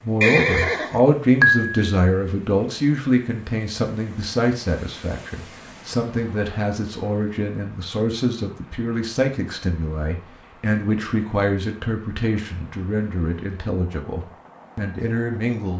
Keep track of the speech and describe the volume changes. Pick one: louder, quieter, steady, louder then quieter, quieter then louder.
quieter.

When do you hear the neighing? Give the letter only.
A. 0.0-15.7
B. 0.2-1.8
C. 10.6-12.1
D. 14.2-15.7
B.